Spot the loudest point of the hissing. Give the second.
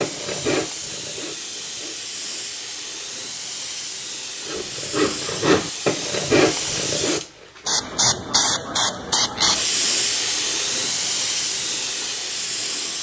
10 s.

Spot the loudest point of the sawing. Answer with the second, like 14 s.
6 s.